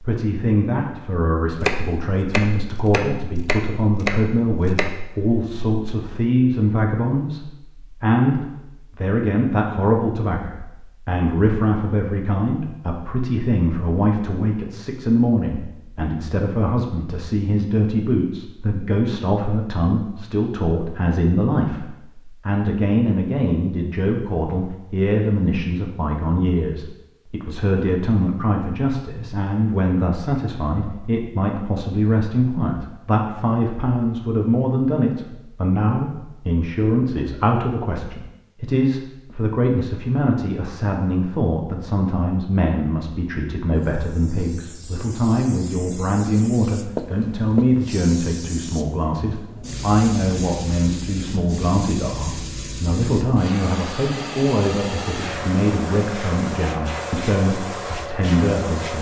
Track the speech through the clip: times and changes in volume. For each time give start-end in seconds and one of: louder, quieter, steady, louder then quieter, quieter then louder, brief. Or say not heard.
0.0-58.9 steady.